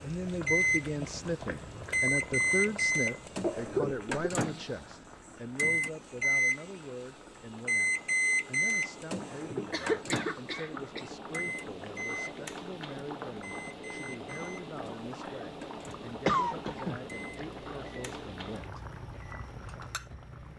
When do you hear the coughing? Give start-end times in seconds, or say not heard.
3.4-4.3, 9.7-11.1, 15.8-17.0.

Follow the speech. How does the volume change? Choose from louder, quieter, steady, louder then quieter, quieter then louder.
quieter.